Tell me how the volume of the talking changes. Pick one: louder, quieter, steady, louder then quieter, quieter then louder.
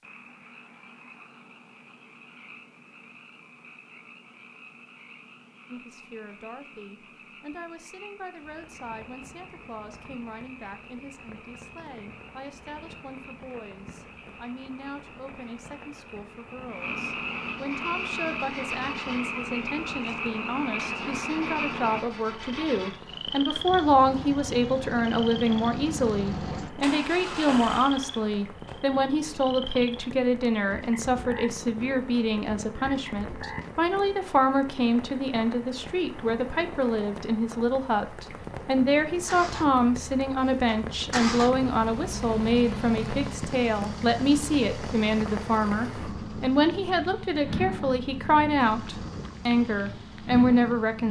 louder.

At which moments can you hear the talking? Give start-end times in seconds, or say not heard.
5.7-51.0.